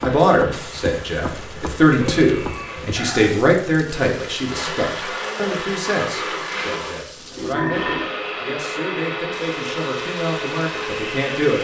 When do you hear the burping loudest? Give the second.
8 s.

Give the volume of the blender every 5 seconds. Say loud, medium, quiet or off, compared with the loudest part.
medium, loud, loud.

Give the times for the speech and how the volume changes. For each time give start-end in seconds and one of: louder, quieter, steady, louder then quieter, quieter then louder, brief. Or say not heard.
0.0-11.5 quieter.